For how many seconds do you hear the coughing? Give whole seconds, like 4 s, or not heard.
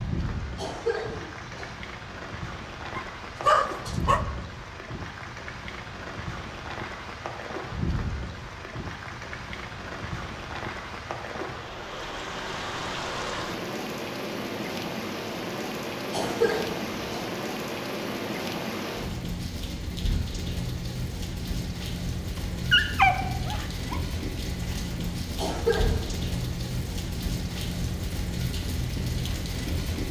3 s.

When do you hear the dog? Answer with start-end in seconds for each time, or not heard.
3.0-4.2, 22.4-24.0.